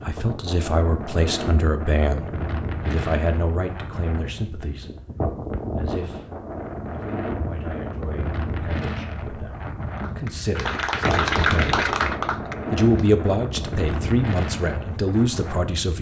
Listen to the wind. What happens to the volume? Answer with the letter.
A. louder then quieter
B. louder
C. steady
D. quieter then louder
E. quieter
C.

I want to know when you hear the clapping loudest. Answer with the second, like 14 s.
11 s.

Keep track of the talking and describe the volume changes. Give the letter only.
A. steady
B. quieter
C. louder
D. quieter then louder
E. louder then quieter
D.